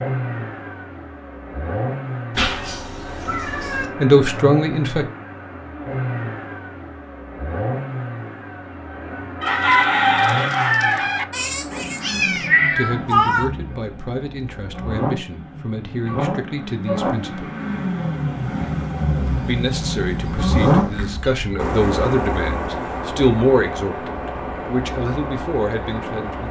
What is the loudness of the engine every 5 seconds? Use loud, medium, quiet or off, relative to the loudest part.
medium, medium, medium, loud, loud, medium.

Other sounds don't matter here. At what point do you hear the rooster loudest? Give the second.
10 s.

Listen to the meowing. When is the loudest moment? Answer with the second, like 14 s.
13 s.